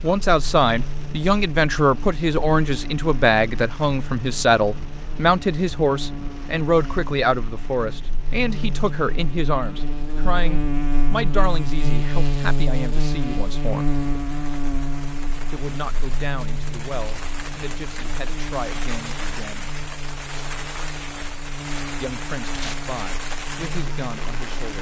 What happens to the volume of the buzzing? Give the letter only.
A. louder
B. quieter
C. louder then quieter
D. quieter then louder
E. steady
C.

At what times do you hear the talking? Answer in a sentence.
The talking can be heard from 0.0 to 13.9 s, from 15.5 to 19.7 s and from 22.0 to 24.7 s.